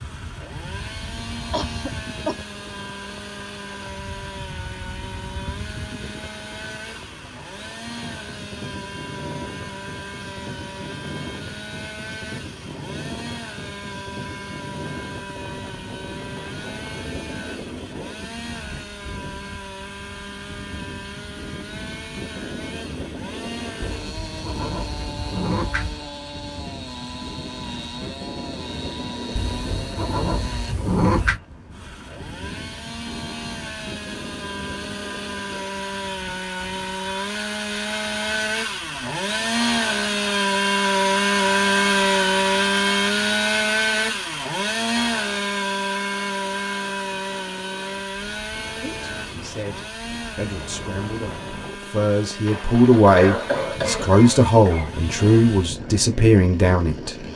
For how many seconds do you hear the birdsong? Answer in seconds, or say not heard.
not heard.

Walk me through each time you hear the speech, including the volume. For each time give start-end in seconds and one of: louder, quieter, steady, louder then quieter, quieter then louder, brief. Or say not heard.
48.8-57.2 louder.